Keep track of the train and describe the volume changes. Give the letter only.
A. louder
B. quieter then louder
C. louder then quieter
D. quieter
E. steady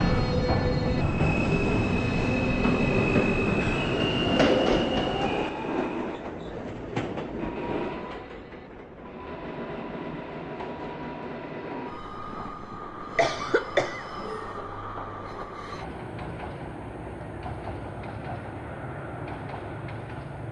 D.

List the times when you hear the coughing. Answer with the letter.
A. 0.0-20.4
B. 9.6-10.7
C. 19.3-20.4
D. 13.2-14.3
D.